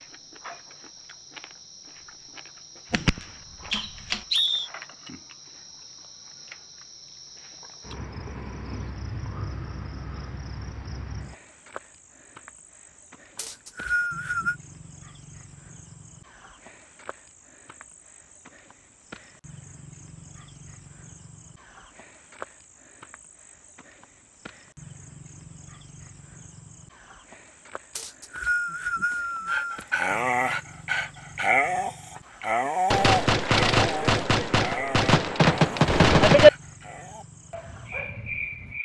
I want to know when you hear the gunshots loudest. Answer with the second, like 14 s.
36 s.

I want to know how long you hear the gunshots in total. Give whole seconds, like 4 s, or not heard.
5 s.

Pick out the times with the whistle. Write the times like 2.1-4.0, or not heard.
3.7-4.7, 13.3-14.6, 27.9-29.9.